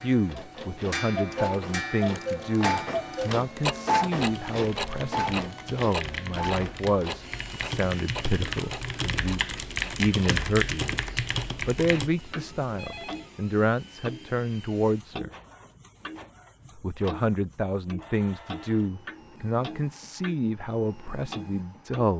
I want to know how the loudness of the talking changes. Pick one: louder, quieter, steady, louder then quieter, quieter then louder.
steady.